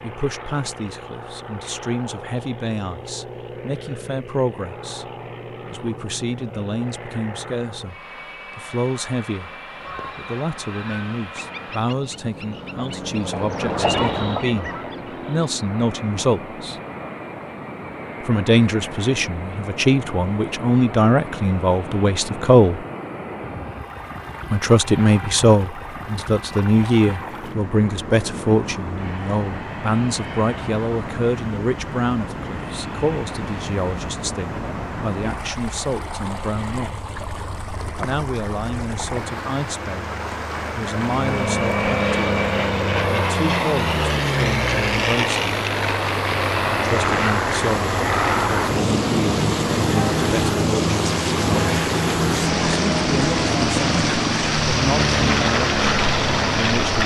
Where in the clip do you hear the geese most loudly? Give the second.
14 s.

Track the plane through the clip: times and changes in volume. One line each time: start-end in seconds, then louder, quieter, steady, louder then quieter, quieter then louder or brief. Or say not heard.
0.0-57.0 louder.